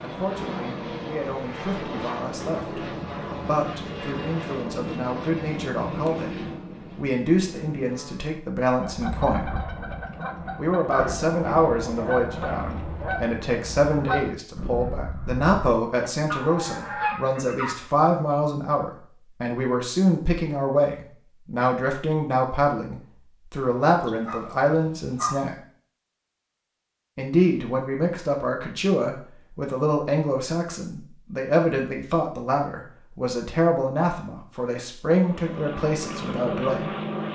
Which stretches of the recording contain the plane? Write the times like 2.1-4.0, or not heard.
0.0-8.4, 35.1-37.3.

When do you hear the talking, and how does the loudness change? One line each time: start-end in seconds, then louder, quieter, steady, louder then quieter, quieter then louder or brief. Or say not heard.
0.0-9.5 louder
10.6-25.6 steady
27.1-36.9 steady.